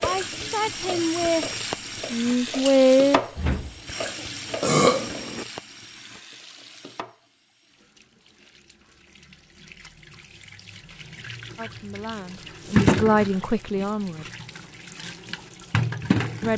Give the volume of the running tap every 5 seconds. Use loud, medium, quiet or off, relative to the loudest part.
medium, quiet, loud, loud.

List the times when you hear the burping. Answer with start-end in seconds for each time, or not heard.
4.6-5.5.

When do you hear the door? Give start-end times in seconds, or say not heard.
3.4-4.2.